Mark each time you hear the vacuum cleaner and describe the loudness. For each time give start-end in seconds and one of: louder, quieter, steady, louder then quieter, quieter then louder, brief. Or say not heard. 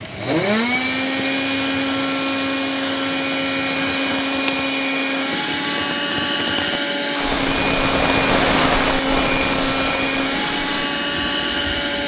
0.0-12.0 steady.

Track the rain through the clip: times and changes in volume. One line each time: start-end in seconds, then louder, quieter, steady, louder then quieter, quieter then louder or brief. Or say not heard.
0.0-12.0 louder then quieter.